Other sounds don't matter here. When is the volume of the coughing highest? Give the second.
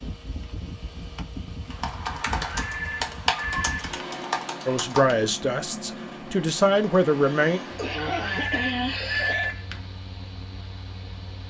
9 s.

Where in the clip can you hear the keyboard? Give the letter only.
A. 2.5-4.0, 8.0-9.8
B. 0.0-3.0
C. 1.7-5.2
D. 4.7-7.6
C.